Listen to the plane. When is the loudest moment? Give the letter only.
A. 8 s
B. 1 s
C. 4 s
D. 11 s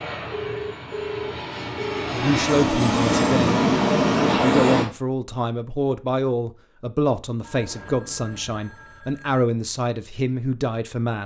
C.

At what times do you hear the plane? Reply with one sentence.
The plane can be heard from 0.0 to 4.9 s.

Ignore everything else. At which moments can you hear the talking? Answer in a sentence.
You can hear the talking from 2.1 to 3.6 s and from 4.4 to 11.2 s.